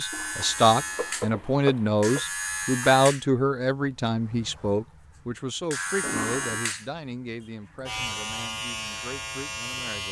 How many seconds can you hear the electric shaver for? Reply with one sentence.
You can hear the electric shaver for 10 seconds altogether.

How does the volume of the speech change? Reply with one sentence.
The volume of the speech goes down.